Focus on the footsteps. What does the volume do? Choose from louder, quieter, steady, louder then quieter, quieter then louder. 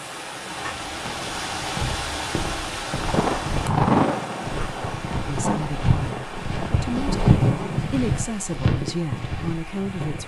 louder then quieter.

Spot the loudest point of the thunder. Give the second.
4 s.